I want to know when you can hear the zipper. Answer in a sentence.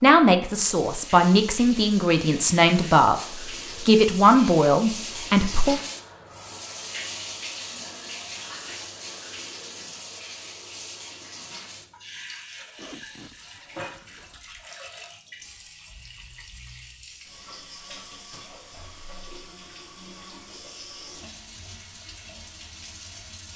The zipper can be heard from 12.8 to 14.7 s.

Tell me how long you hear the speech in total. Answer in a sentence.
The speech can be heard for 5 seconds in total.